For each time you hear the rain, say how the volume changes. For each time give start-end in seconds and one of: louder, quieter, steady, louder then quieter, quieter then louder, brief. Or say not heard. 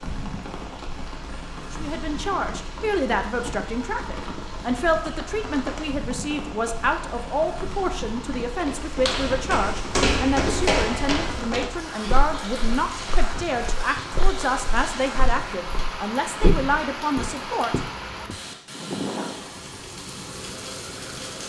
0.0-21.4 steady.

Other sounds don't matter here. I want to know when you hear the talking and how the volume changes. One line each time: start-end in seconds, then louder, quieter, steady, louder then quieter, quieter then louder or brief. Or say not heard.
1.7-18.2 steady.